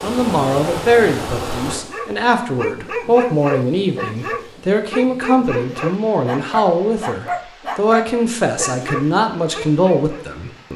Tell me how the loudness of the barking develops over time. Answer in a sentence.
The loudness of the barking stays about the same.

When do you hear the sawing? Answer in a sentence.
The sawing can't be heard in this clip.